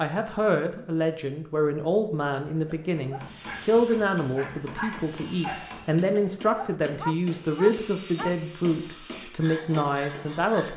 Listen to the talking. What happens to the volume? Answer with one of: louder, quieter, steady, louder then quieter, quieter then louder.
steady.